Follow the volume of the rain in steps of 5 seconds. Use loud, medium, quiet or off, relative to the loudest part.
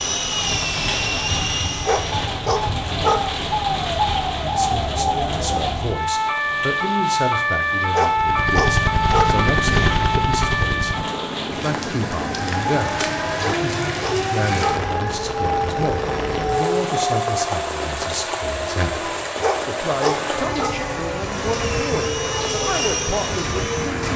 loud, medium, loud, loud, loud.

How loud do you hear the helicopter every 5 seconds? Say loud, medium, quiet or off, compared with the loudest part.
loud, loud, medium, off, medium.